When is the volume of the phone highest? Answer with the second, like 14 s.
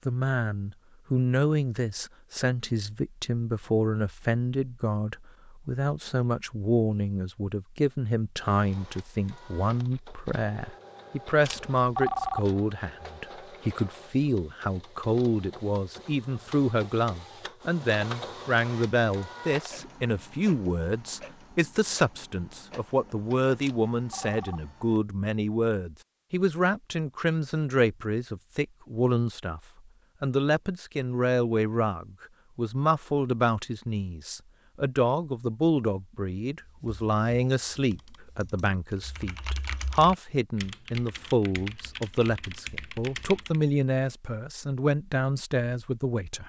12 s.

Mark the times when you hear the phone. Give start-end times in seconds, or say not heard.
11.4-12.6, 23.6-24.7.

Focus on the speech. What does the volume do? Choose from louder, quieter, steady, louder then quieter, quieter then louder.
steady.